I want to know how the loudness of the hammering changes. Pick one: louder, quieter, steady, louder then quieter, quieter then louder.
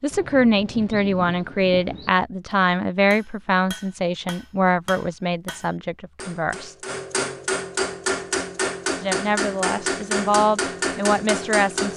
louder.